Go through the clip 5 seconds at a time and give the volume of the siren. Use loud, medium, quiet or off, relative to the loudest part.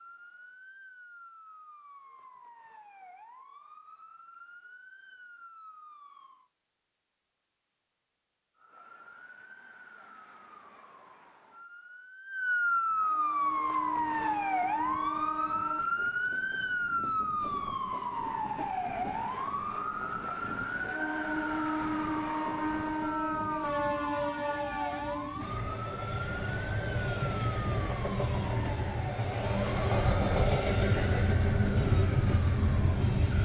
quiet, quiet, loud, loud, medium, medium, quiet.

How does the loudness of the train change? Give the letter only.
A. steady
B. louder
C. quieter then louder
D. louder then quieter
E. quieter
B.